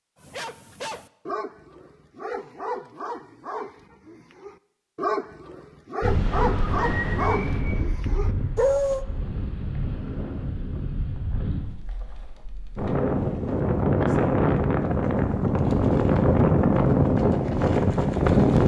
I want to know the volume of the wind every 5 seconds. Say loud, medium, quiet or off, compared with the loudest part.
off, medium, medium, loud.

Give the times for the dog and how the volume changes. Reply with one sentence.
The dog can be heard from 0.2 to 9.1 s, getting louder.